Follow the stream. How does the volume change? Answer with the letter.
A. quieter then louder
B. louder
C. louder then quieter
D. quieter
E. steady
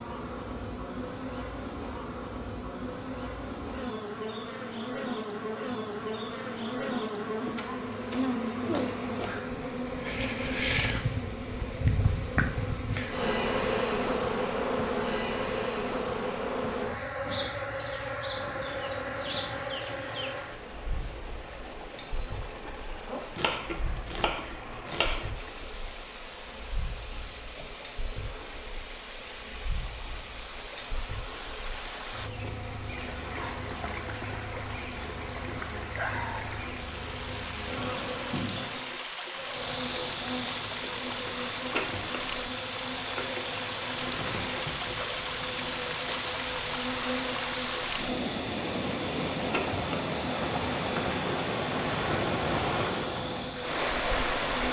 B.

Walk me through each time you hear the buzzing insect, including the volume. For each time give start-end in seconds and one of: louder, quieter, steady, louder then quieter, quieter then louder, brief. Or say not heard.
0.0-54.6 quieter then louder.